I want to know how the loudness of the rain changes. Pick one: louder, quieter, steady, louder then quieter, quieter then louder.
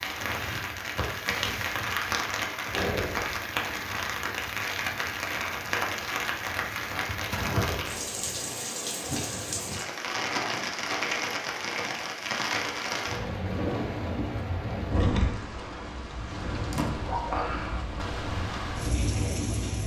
steady.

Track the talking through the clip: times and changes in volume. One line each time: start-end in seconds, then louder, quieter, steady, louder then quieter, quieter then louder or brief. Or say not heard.
not heard.